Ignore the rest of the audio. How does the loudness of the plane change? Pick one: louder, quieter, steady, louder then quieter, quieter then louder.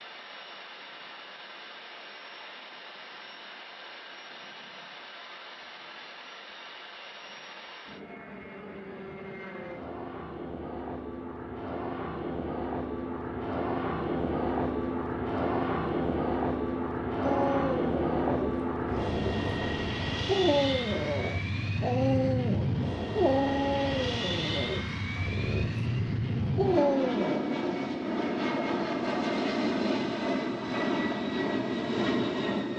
louder.